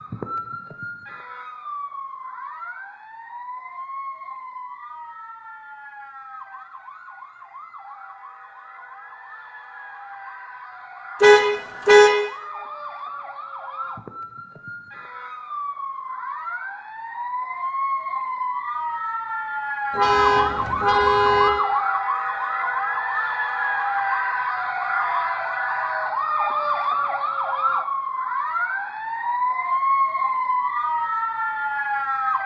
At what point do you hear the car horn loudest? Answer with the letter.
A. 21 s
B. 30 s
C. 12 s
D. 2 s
C.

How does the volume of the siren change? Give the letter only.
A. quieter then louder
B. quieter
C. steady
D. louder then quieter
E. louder
E.